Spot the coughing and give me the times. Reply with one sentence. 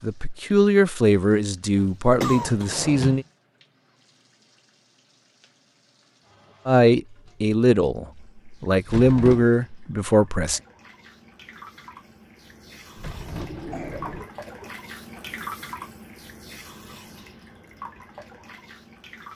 The coughing can be heard from 1.8 to 2.9 s and from 13.5 to 15.3 s.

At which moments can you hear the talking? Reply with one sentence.
You can hear the talking from 0.0 to 3.2 s and from 6.7 to 10.6 s.